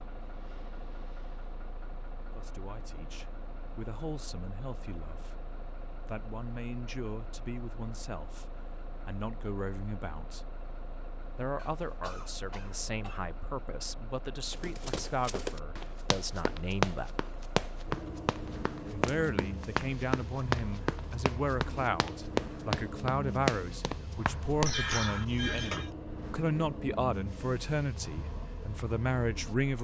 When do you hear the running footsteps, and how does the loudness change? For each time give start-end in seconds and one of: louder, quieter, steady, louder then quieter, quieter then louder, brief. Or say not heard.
14.5-24.8 louder.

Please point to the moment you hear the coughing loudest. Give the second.
25 s.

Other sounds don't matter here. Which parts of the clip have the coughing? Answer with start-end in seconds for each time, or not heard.
11.6-13.3, 24.6-25.9.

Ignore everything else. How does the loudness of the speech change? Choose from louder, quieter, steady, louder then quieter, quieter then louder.
louder.